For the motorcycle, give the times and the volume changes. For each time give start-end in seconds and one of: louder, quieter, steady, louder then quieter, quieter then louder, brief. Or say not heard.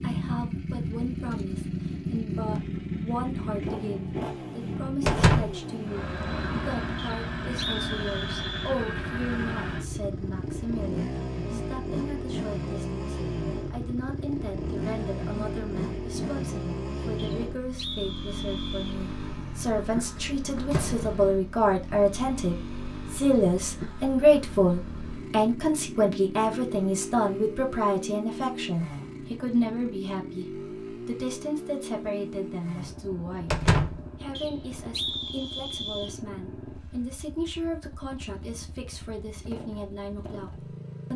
0.0-41.1 quieter.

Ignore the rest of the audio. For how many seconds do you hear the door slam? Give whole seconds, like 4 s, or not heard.
2 s.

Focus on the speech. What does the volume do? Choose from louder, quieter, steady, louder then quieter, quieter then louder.
louder then quieter.